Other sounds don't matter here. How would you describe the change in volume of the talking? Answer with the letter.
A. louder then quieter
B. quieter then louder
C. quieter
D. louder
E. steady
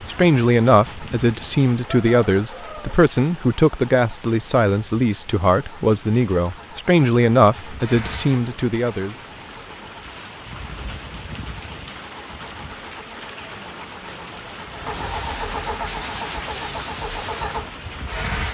E.